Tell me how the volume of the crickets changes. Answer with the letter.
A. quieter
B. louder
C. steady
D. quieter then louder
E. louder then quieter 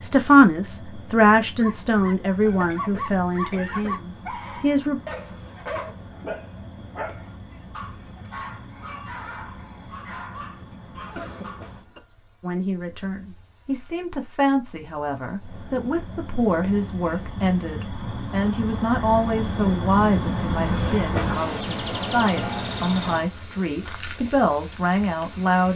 B.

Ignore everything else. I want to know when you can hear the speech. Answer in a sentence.
The speech can be heard from 0.0 to 5.0 s and from 12.4 to 25.7 s.